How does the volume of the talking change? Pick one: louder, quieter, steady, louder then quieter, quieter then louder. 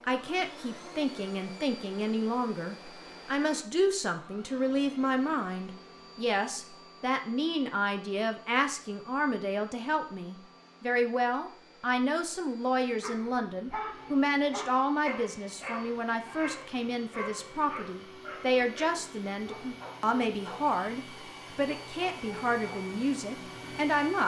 steady.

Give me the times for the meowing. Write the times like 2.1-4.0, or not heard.
not heard.